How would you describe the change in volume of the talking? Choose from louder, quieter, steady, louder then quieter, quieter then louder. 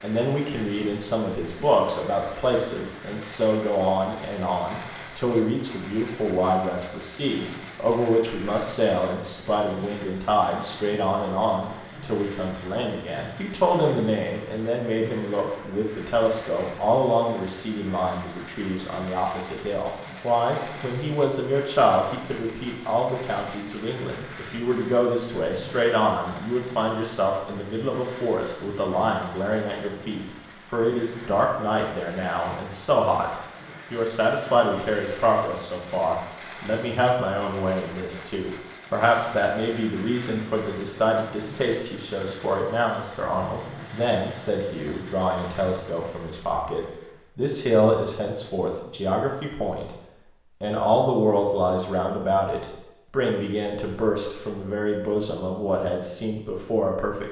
steady.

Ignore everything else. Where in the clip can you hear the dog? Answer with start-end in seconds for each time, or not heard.
not heard.